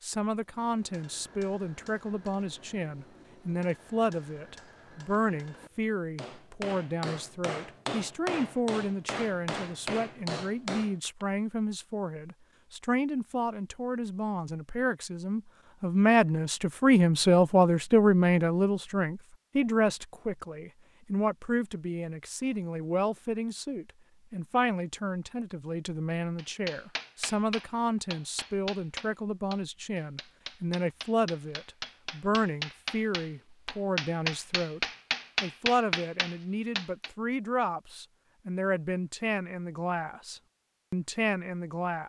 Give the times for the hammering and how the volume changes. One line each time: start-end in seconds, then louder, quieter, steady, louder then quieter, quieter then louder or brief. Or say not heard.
0.5-11.2 louder
26.4-37.1 louder.